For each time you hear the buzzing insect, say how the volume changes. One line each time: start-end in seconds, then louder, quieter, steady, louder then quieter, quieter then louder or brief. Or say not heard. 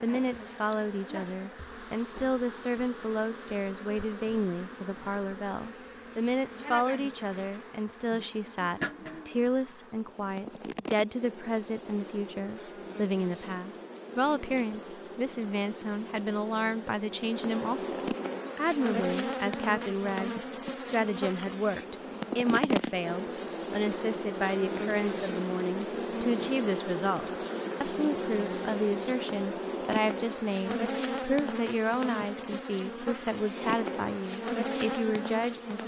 0.0-35.8 louder.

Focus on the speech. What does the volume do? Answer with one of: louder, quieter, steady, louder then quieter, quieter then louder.
steady.